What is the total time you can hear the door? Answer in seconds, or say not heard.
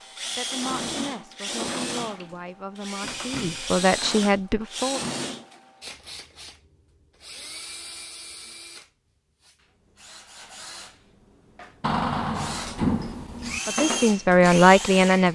3 s.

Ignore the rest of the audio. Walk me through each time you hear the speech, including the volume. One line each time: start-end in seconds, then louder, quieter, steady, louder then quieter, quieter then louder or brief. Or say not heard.
0.3-5.0 louder
13.7-15.3 brief.